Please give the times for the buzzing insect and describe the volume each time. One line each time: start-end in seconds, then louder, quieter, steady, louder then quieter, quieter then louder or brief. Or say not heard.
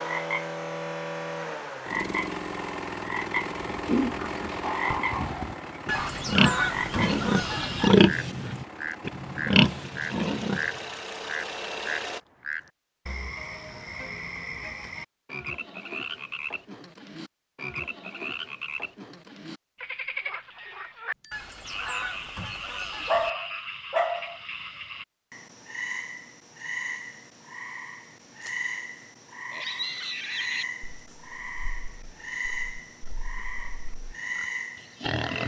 not heard.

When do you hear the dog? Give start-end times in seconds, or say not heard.
4.6-6.1, 23.1-24.4.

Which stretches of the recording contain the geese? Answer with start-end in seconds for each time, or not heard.
5.8-7.9, 21.3-23.3.